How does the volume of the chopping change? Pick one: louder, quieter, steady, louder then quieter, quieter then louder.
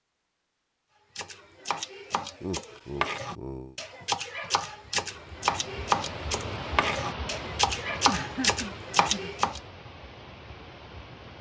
louder.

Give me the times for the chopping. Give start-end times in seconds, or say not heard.
1.1-9.6.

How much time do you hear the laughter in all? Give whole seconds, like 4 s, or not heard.
3 s.